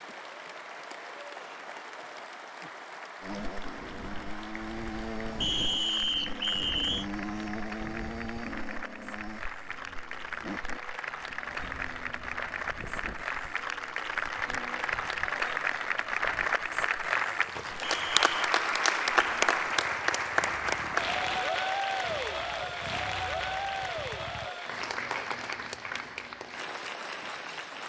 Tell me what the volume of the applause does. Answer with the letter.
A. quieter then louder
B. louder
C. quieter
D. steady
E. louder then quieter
E.